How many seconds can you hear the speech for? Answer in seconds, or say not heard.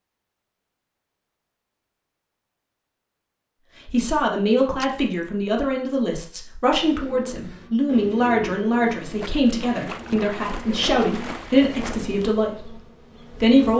10 s.